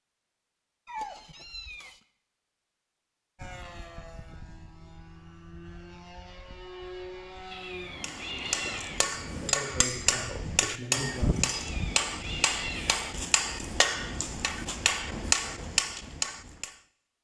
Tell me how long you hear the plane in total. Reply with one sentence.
You can hear the plane for 6 seconds altogether.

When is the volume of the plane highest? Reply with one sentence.
The loudest moment of the plane is at 7 seconds.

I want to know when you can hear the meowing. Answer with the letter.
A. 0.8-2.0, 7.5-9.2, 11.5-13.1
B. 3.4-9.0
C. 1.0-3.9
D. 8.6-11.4
A.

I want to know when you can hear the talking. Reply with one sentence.
The talking can be heard from 8.6 to 11.4 s.